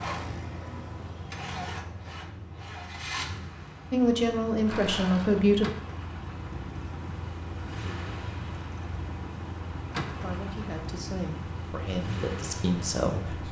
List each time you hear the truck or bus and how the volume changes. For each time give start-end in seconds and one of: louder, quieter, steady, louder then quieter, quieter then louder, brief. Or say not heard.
0.0-13.4 steady.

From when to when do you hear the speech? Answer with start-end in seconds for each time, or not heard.
3.9-5.7, 10.1-13.4.